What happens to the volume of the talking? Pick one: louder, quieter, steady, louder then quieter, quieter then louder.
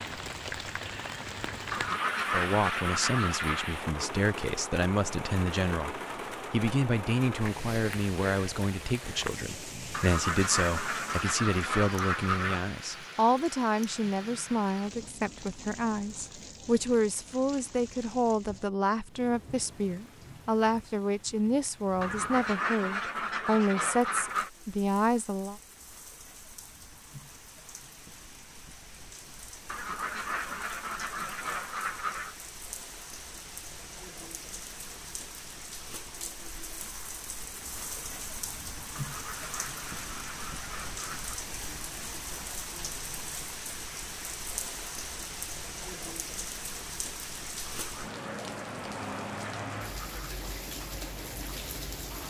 steady.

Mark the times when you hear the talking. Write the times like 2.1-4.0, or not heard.
2.3-25.6.